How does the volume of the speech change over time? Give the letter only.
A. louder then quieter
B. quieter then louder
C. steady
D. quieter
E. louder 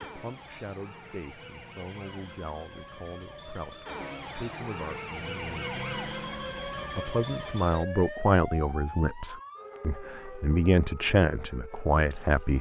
E.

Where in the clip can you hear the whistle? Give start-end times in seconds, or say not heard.
not heard.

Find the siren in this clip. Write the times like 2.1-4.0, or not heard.
0.0-12.5.